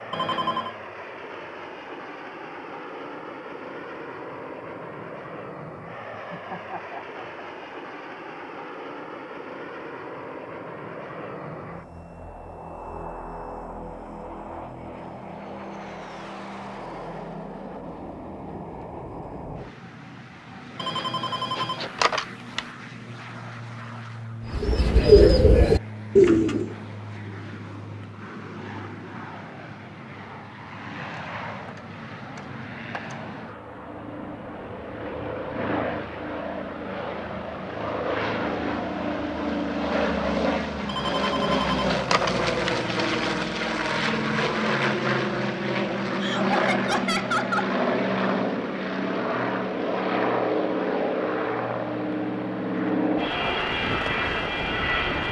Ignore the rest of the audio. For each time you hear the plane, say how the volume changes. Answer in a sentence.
The plane can be heard from 0.0 to 55.2 s, getting louder.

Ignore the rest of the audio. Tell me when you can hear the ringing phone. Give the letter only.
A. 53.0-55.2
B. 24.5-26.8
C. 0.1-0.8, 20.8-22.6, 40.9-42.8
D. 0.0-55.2
C.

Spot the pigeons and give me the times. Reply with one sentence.
The pigeons can be heard from 24.5 to 26.8 s.